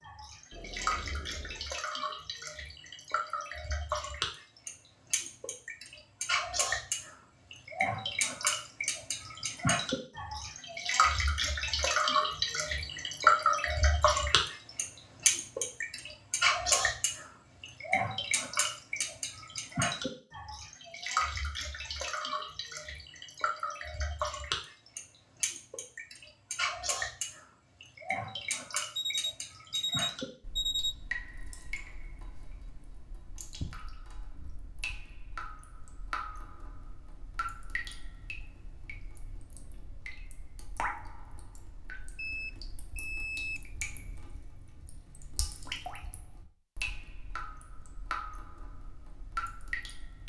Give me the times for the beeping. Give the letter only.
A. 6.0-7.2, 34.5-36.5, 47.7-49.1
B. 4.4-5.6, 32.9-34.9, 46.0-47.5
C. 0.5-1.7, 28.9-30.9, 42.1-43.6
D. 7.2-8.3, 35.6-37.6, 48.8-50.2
C.